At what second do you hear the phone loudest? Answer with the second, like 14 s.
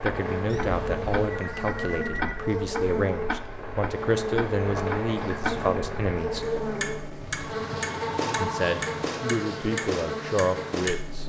8 s.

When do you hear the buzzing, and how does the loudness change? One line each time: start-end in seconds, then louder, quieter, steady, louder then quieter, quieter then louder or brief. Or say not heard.
0.0-11.1 steady.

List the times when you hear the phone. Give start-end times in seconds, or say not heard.
1.2-2.5, 7.2-9.1.